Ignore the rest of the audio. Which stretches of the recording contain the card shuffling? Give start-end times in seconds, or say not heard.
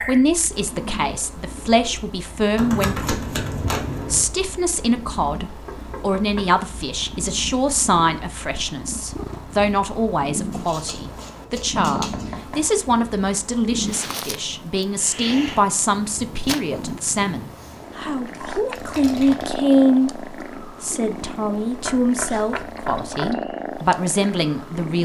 2.5-4.2, 10.5-12.3, 18.8-19.9.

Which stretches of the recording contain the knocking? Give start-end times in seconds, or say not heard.
5.7-6.5, 11.8-12.8, 21.9-23.4.